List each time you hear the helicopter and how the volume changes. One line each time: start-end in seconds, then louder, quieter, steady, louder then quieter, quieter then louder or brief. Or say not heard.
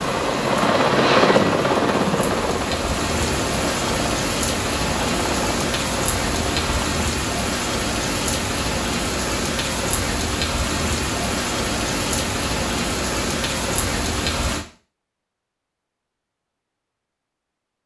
0.0-6.9 quieter.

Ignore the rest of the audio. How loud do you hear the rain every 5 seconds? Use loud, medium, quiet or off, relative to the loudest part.
loud, loud, loud, off.